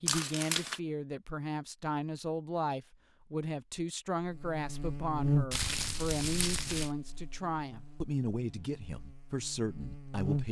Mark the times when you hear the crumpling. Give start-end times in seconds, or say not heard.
0.1-0.8, 5.5-6.9.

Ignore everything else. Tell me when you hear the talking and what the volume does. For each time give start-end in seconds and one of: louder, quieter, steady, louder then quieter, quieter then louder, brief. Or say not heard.
0.0-10.4 steady.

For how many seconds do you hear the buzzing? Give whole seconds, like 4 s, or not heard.
6 s.